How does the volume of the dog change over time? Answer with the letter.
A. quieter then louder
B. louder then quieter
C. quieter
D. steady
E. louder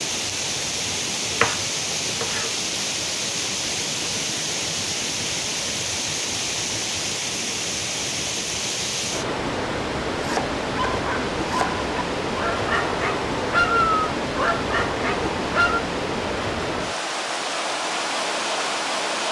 B.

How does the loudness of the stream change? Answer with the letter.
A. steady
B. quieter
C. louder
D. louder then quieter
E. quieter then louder
A.